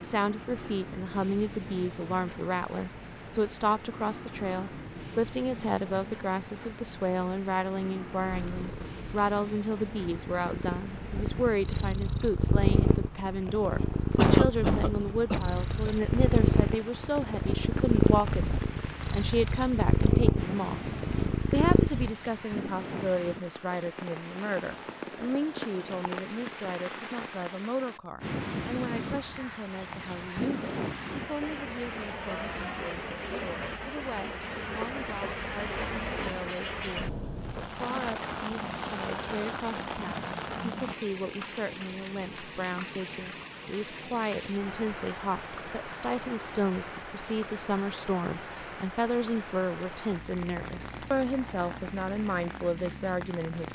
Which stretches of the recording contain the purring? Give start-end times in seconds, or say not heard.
8.2-22.1.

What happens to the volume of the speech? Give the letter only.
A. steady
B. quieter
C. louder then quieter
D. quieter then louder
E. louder
D.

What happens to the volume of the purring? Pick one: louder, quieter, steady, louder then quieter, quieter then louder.
louder.